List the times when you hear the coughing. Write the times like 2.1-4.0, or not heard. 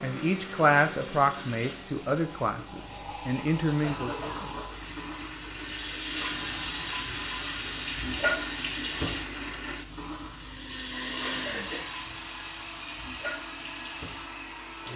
3.8-4.5, 11.2-11.9.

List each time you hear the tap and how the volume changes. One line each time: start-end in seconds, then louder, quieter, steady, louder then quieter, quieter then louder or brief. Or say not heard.
0.0-14.9 louder then quieter.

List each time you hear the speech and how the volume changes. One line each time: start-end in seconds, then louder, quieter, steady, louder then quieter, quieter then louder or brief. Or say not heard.
0.0-4.3 quieter then louder.